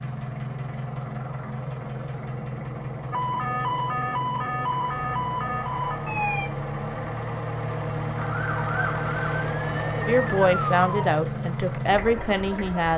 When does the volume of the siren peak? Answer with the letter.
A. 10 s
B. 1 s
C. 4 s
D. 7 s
C.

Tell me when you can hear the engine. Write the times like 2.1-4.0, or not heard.
0.0-12.9.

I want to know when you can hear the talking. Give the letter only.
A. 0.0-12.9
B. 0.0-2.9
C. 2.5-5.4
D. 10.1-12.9
D.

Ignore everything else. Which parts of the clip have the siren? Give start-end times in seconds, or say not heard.
3.1-6.5, 8.2-11.2.